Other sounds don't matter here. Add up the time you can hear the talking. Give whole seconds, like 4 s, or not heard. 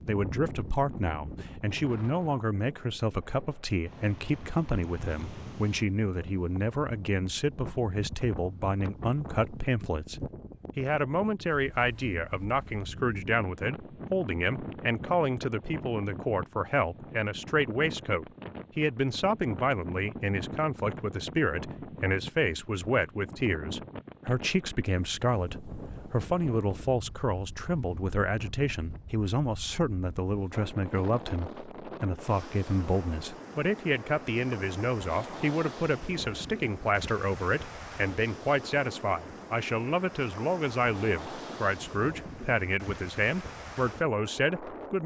45 s.